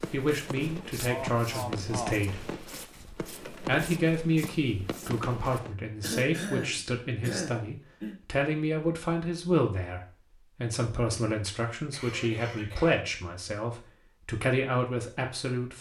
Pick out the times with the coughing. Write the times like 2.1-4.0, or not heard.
1.1-2.1, 6.0-8.2, 11.9-13.1.